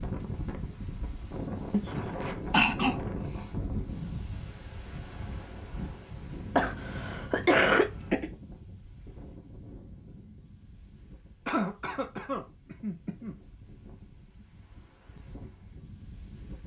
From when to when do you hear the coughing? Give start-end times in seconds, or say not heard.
1.7-3.5, 6.5-8.3, 11.4-13.3.